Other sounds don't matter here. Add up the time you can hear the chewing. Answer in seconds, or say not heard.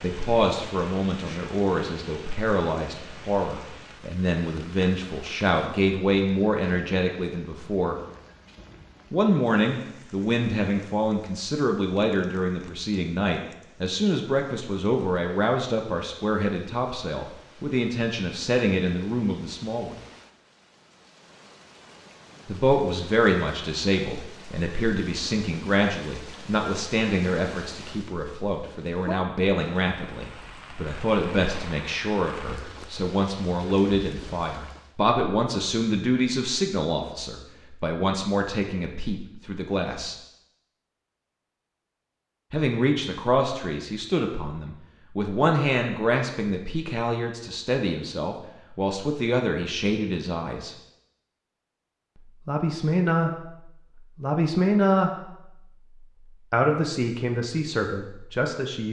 not heard.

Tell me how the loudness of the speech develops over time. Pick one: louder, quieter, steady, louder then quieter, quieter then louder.
steady.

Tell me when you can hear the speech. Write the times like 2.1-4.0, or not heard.
0.0-8.0, 9.1-19.9, 22.4-40.1, 42.5-50.8, 52.1-58.8.